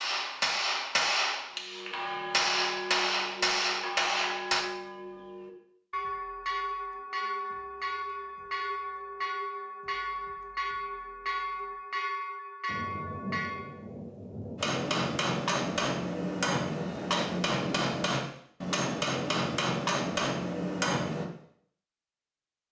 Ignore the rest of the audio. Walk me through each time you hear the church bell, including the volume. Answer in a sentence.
You can hear the church bell from 1.6 to 13.8 s, at a steady volume.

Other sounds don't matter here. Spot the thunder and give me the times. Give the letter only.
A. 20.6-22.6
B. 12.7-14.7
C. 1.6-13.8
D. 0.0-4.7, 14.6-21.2
B.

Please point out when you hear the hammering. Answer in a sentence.
You can hear the hammering from 0.0 to 4.7 s and from 14.6 to 21.2 s.